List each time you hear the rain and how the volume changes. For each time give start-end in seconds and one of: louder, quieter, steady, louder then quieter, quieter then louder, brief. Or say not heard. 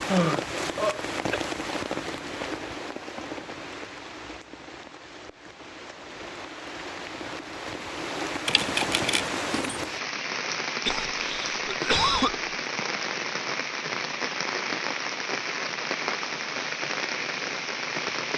0.0-18.3 quieter then louder.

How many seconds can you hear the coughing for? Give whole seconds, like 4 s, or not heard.
3 s.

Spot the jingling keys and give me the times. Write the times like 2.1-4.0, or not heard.
8.4-9.8.